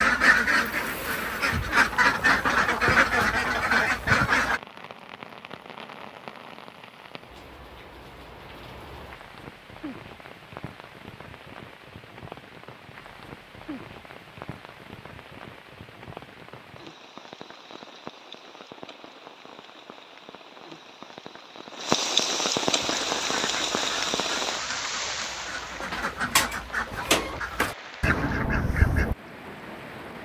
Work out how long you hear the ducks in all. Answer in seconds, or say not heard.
11 s.